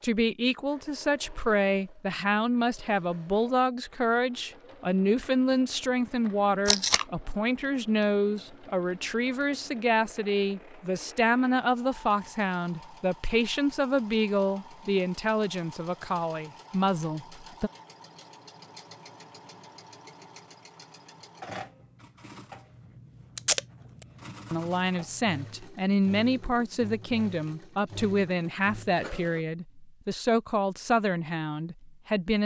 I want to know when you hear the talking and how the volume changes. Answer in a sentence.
You can hear the talking from 0.0 to 17.7 s, at a steady volume; and from 24.5 to 32.4 s, at a steady volume.